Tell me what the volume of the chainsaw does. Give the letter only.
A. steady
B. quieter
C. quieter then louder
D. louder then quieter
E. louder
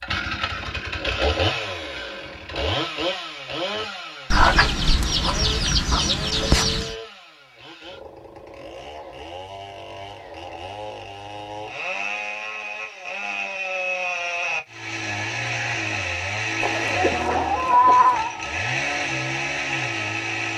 C.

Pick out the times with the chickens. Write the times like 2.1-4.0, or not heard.
4.3-7.0, 16.6-18.3.